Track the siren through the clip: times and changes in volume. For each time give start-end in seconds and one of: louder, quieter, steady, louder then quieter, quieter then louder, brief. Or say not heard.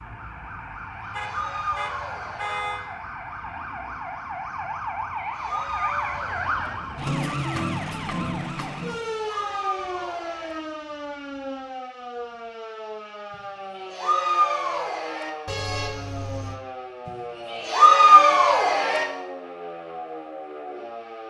0.0-21.2 louder then quieter.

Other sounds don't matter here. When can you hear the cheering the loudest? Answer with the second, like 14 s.
18 s.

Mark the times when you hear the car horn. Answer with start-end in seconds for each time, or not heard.
1.1-2.8, 15.4-16.6.